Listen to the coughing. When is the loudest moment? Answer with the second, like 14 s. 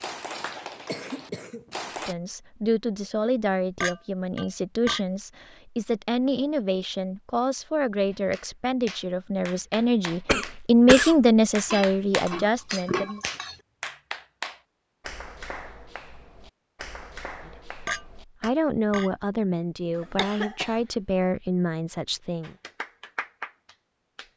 11 s.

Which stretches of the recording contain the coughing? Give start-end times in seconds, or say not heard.
0.8-1.8, 10.2-11.2, 19.9-20.8.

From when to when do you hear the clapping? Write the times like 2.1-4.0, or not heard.
0.0-2.1, 8.1-18.5, 22.4-24.3.